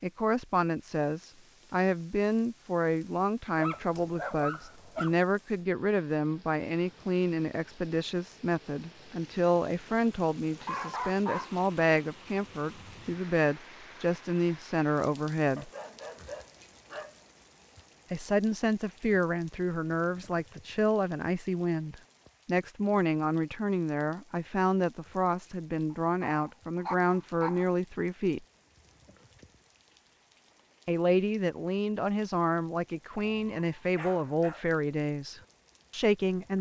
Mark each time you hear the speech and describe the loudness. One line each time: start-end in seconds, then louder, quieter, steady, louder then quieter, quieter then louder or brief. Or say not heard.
0.0-15.7 steady
18.1-28.4 steady
30.9-36.5 steady.